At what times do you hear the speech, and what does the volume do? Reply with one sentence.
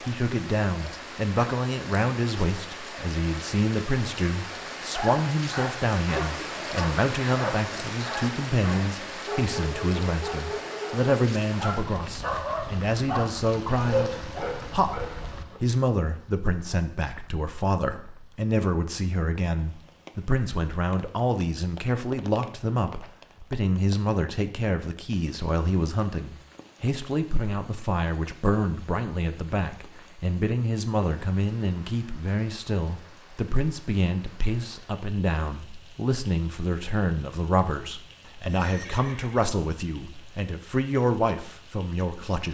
The speech can be heard from 0.0 to 42.4 s, at a steady volume.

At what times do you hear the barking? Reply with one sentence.
The barking can be heard from 4.8 to 15.6 s.